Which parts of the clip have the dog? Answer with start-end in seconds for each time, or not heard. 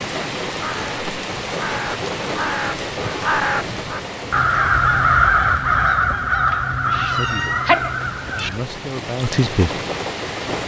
not heard.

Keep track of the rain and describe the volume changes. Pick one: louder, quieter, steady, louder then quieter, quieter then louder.
quieter then louder.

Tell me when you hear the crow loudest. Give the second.
5 s.